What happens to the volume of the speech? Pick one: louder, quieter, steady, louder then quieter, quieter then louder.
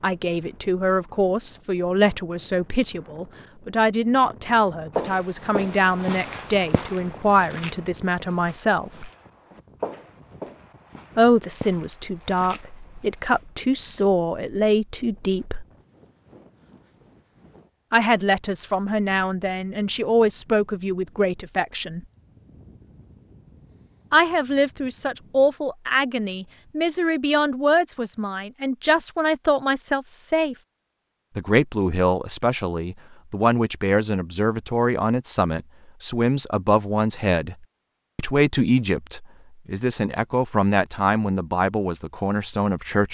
steady.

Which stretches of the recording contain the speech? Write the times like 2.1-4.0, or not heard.
0.0-9.1, 11.2-15.7, 17.9-22.0, 24.1-30.6, 31.4-37.5, 38.1-43.0.